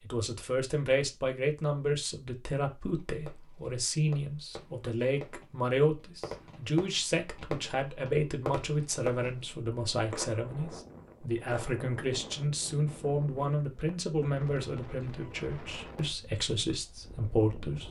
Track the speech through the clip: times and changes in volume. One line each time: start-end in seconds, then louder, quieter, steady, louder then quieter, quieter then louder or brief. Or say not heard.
0.0-17.8 steady.